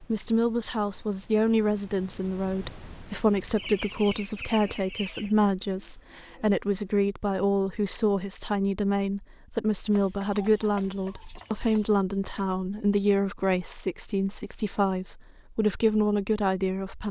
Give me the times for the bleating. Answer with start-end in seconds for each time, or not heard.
not heard.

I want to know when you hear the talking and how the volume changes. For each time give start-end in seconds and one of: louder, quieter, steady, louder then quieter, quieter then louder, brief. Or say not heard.
0.0-17.0 steady.